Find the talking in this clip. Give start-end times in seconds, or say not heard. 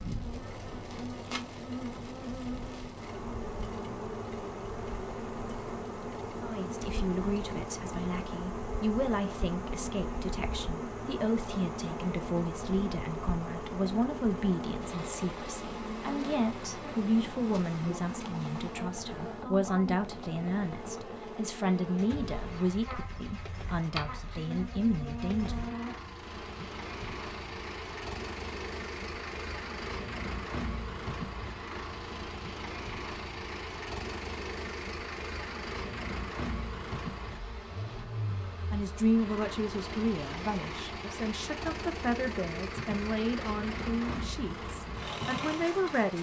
6.4-25.6, 38.7-46.1.